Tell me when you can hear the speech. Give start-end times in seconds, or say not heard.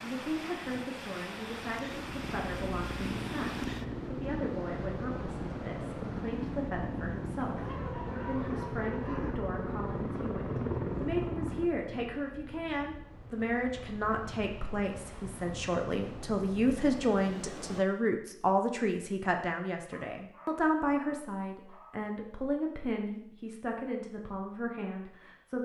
0.0-25.6.